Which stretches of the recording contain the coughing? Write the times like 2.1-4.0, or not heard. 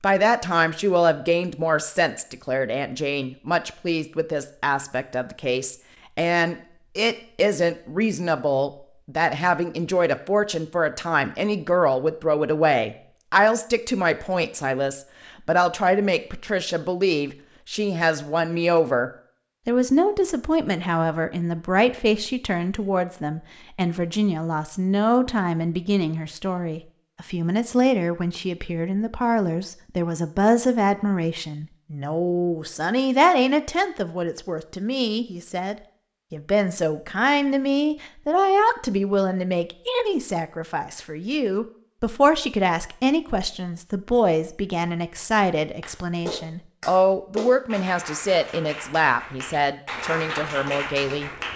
not heard.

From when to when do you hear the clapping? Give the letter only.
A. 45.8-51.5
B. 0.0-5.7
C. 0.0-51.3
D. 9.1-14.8
A.